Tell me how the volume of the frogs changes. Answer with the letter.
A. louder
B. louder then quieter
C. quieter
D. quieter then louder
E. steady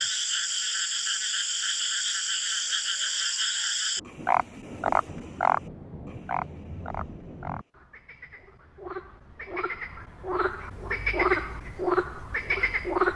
D.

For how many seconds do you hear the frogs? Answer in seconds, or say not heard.
13 s.